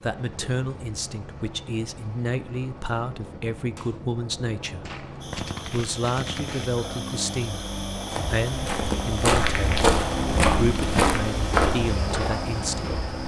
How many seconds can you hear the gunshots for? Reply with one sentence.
You can hear the gunshots for 2 seconds altogether.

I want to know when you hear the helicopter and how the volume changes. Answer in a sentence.
You can hear the helicopter from 0.0 to 13.2 s, getting louder.